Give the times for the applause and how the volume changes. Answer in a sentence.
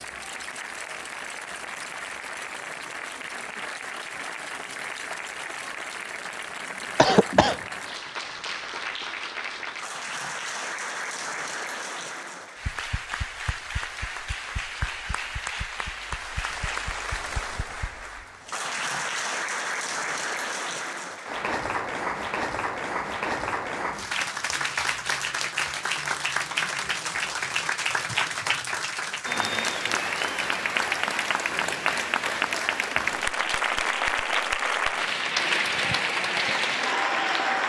The applause can be heard from 0.0 to 37.6 s, getting louder.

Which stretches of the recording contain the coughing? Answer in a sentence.
The coughing can be heard from 7.0 to 7.5 s.